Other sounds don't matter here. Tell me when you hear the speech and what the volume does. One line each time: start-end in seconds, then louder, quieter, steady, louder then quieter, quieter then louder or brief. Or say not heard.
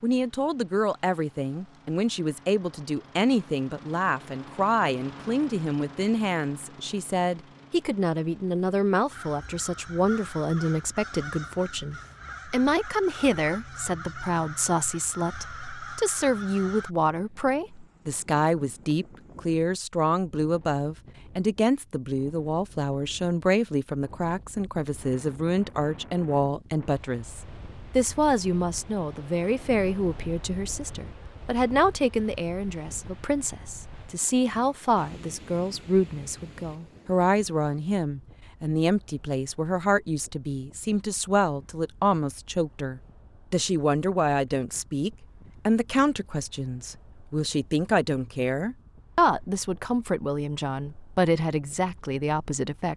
0.0-52.9 steady.